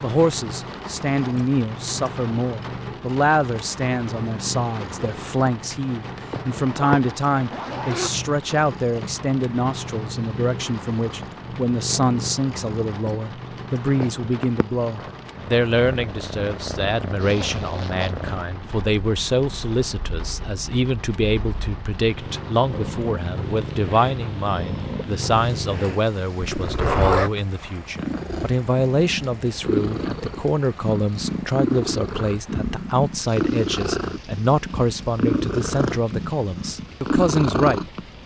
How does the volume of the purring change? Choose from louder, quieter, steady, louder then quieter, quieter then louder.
louder.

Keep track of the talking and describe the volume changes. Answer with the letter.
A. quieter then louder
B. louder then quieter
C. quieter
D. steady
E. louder
D.